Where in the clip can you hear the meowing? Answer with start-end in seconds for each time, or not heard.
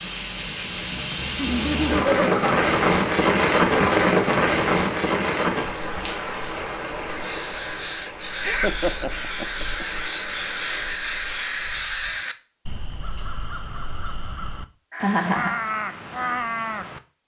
not heard.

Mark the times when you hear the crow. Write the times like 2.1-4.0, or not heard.
7.0-17.0.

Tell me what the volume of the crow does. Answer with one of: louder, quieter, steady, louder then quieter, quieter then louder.
quieter then louder.